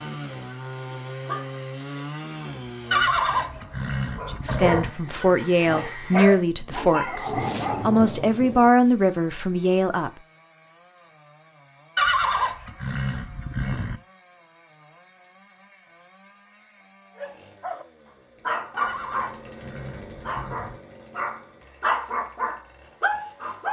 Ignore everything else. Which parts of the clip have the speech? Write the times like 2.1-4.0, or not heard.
4.2-10.1.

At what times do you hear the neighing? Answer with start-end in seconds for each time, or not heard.
2.9-4.9, 11.9-14.0, 18.8-20.8.